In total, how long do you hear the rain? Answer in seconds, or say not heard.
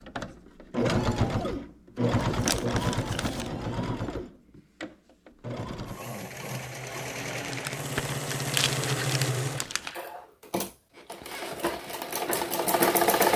not heard.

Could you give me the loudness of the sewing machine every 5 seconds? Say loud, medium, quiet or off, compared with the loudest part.
loud, medium, loud.